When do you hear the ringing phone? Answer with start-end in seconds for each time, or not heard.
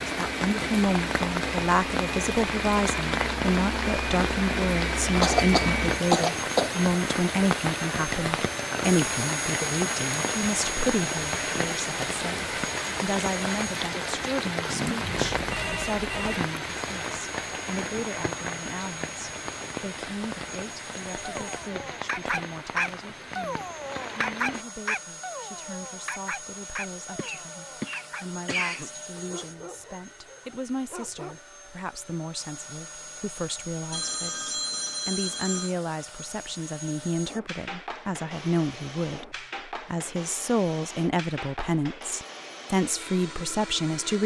14.9-16.4, 33.9-35.8.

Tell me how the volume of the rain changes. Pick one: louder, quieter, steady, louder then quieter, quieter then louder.
quieter.